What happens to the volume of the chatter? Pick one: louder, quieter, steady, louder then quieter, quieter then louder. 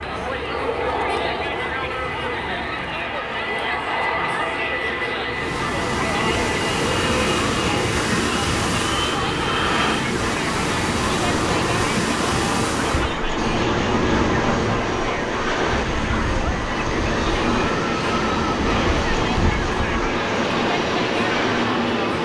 steady.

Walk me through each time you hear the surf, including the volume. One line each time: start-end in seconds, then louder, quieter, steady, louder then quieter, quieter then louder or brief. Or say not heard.
5.3-22.2 steady.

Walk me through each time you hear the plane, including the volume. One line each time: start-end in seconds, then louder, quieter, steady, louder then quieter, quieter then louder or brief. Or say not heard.
0.0-22.2 steady.